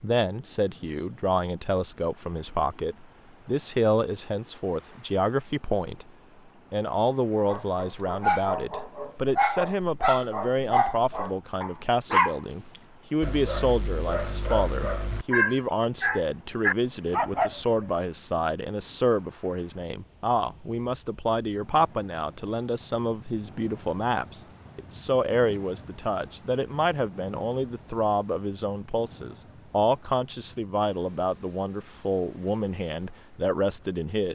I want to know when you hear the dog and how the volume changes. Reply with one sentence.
You can hear the dog from 7.5 to 12.3 s, getting quieter; and from 13.2 to 17.9 s, getting louder.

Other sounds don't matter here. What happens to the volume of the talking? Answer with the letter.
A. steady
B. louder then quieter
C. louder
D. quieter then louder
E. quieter
A.